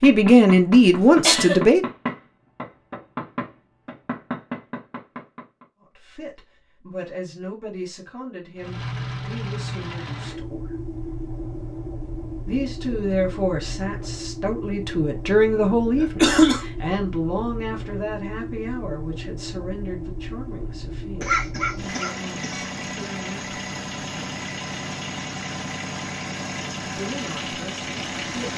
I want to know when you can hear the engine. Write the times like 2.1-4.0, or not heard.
8.6-28.5.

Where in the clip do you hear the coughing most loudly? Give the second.
16 s.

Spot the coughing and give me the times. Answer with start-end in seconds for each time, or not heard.
1.2-1.6, 15.9-16.6, 21.2-22.7.